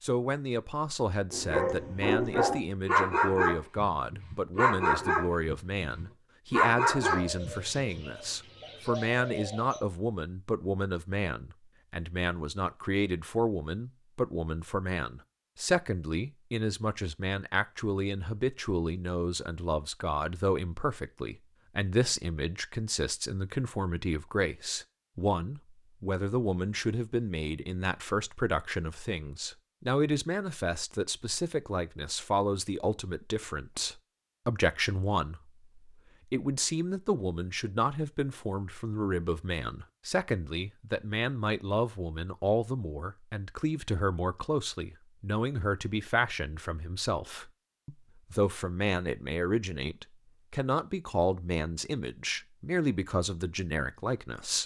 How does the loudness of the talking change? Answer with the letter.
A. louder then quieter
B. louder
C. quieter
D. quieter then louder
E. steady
E.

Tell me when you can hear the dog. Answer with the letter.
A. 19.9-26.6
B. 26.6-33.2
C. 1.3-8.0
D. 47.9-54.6
C.